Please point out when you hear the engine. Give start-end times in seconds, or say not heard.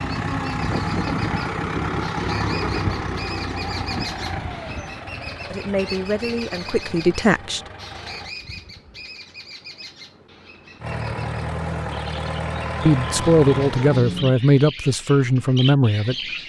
0.0-8.3, 10.8-14.3.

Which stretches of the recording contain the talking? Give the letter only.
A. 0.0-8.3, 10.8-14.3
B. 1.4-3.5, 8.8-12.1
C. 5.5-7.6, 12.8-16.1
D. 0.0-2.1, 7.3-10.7
C.